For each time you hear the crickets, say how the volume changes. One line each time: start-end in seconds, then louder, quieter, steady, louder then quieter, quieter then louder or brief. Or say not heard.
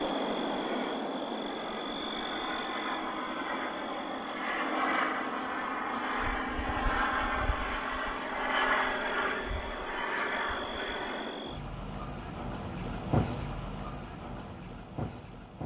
0.0-15.6 quieter then louder.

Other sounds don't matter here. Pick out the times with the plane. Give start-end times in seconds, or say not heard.
0.0-11.6.